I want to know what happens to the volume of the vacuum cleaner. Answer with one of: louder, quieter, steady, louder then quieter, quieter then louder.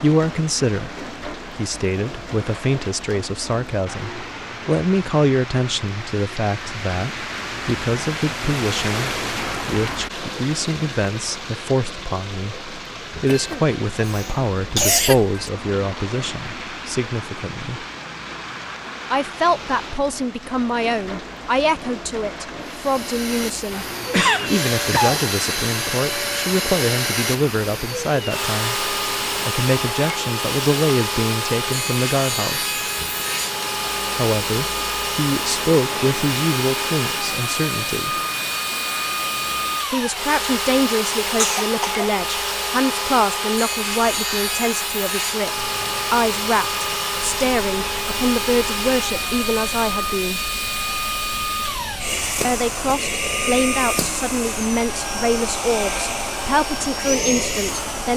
steady.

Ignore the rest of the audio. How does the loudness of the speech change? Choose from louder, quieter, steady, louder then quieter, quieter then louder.
steady.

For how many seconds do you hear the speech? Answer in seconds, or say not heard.
51 s.